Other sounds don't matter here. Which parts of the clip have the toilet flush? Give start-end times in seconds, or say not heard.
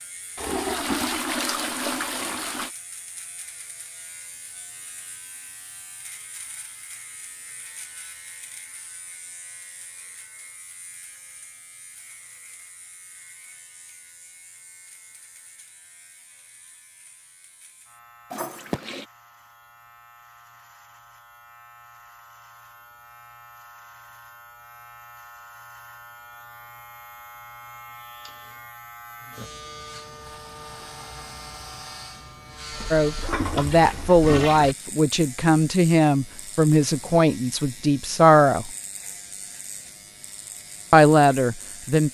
0.3-2.7, 18.3-19.1, 32.7-34.8.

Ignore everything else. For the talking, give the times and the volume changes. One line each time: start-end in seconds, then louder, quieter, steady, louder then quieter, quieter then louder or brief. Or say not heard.
32.9-38.7 steady
40.9-42.0 brief.